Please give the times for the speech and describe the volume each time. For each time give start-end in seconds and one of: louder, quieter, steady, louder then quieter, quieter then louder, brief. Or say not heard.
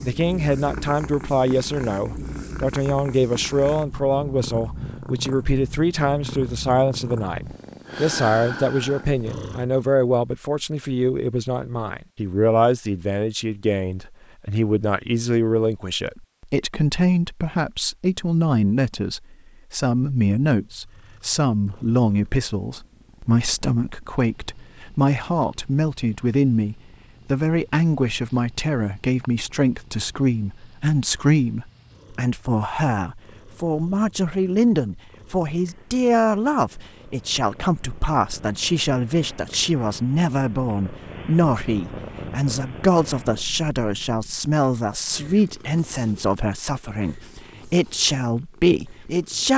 0.0-49.5 steady.